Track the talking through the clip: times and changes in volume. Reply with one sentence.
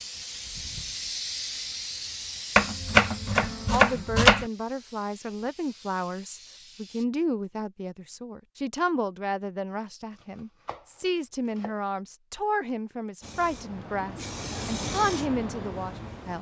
You can hear the talking from 3.7 to 16.3 s, at a steady volume.